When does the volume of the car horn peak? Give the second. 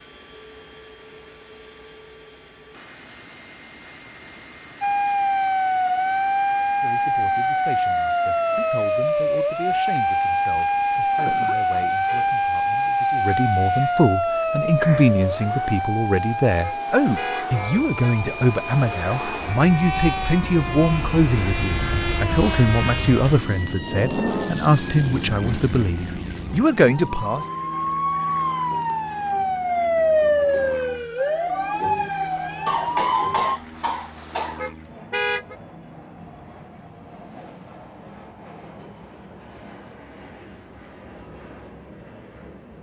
35 s.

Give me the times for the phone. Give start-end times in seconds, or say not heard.
not heard.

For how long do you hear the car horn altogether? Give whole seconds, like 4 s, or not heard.
3 s.